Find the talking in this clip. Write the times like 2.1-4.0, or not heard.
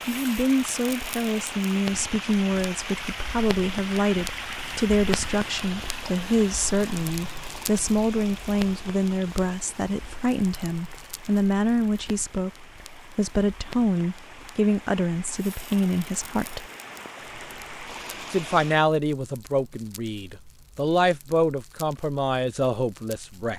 0.1-16.6, 18.3-23.5.